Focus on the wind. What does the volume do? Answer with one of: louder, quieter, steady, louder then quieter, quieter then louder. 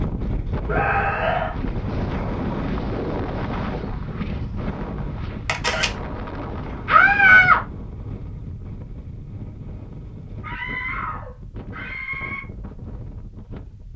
quieter.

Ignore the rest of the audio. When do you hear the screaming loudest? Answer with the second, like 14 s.
7 s.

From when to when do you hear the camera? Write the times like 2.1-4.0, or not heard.
5.5-5.9.